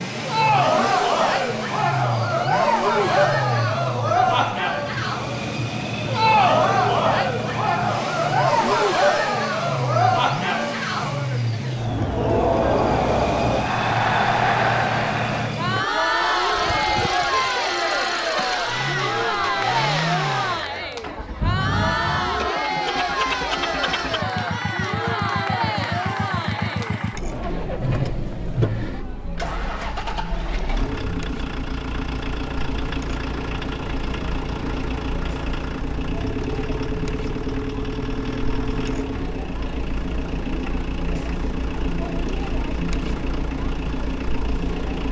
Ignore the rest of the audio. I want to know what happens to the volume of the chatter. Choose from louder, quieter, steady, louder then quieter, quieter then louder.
quieter.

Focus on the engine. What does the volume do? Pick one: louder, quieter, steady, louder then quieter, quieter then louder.
steady.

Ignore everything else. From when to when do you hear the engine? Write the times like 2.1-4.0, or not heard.
0.0-45.0.